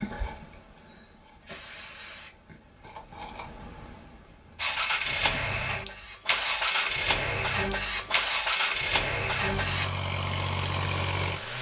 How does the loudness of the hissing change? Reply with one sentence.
The volume of the hissing goes up.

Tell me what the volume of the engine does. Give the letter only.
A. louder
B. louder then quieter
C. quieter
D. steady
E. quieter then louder
D.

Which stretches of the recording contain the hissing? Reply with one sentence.
The hissing can be heard from 0.0 to 9.9 s.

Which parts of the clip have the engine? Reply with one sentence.
You can hear the engine from 4.5 to 11.5 s.